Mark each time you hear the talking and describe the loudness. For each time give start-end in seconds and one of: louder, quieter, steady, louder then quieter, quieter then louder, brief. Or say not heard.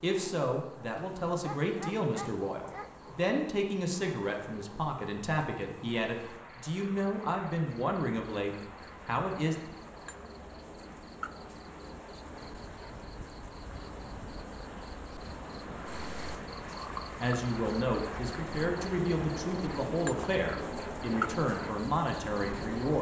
0.0-9.6 steady
17.2-22.9 steady.